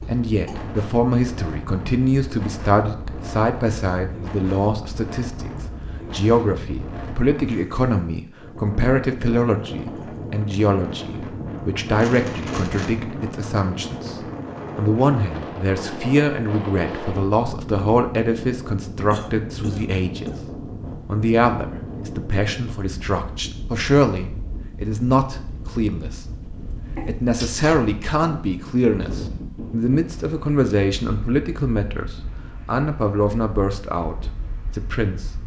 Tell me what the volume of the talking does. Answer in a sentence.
The loudness of the talking stays about the same.